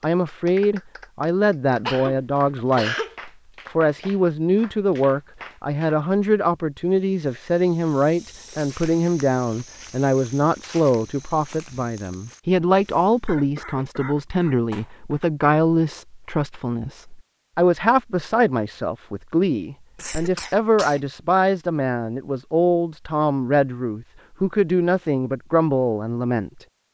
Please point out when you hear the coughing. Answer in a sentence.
The coughing can be heard from 1.9 to 3.1 s, from 13.2 to 15.3 s and from 19.9 to 21.1 s.